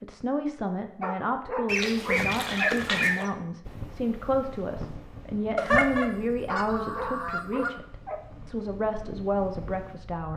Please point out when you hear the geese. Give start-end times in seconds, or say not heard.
1.6-3.3, 5.5-7.7.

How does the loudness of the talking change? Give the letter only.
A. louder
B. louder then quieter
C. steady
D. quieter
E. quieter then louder
C.